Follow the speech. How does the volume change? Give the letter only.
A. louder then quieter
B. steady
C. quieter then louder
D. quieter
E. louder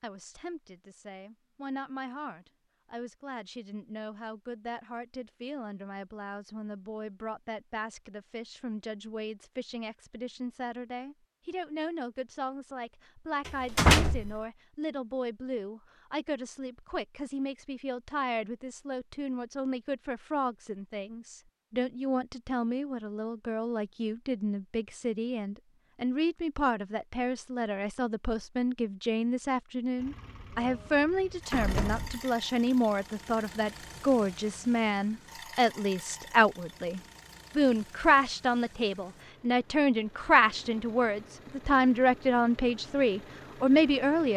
E.